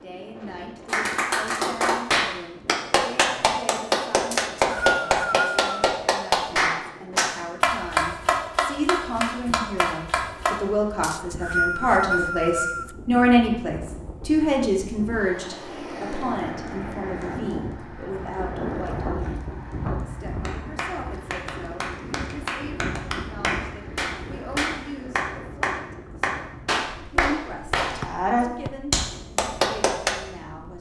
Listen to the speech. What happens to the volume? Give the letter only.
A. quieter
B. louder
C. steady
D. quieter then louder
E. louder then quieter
E.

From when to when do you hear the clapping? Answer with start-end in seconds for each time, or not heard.
0.8-10.6, 20.4-30.1.